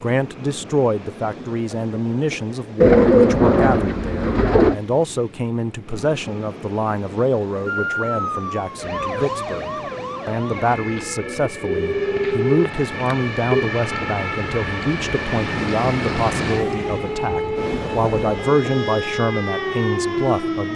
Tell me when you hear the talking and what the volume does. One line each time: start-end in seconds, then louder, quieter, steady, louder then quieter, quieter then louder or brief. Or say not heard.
0.0-20.7 steady.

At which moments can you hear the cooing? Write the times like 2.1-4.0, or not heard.
2.8-4.8, 10.5-12.3.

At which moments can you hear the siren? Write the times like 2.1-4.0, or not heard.
7.7-20.7.